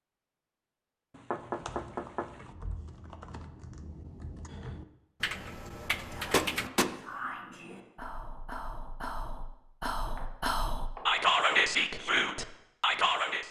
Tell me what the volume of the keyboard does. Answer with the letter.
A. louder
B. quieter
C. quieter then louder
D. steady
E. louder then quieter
A.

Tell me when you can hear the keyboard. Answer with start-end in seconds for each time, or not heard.
1.4-6.7.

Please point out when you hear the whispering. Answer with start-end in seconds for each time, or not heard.
6.1-13.4.